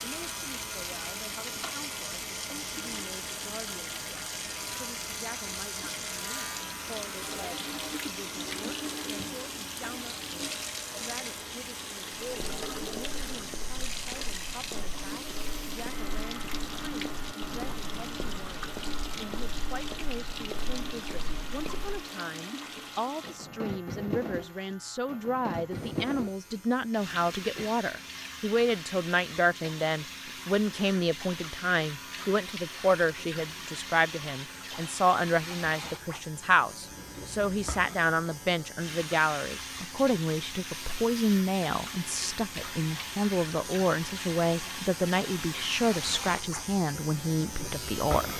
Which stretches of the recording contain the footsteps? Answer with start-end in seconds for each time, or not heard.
12.2-22.1.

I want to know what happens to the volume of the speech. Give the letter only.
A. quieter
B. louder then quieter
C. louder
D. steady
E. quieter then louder
C.